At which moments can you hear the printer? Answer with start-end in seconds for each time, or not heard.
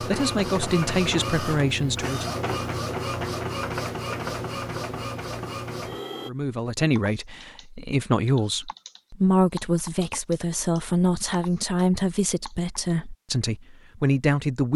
0.0-6.3.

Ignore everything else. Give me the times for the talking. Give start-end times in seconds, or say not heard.
0.0-2.4, 6.2-14.7.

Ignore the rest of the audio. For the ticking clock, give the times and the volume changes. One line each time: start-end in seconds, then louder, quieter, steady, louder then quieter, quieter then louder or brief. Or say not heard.
not heard.